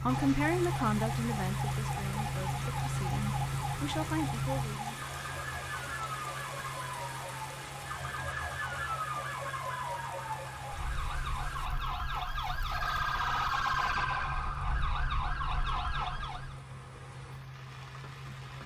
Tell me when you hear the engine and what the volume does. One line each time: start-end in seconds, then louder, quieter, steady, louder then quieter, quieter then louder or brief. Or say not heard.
0.0-18.6 quieter.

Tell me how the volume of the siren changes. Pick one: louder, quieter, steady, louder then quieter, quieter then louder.
louder.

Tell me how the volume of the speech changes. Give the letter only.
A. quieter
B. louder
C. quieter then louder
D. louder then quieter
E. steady
C.